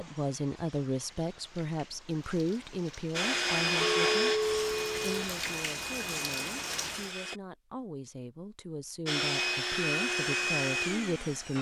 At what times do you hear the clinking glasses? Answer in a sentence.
You can hear the clinking glasses from 3.8 to 5.2 s.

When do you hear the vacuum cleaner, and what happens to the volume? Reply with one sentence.
You can hear the vacuum cleaner from 3.1 to 7.4 s, getting quieter; and briefly from 9.1 to 11.5 s.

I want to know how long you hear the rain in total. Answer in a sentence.
You can hear the rain for 7 seconds altogether.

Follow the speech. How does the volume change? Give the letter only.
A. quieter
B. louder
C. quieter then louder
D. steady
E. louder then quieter
C.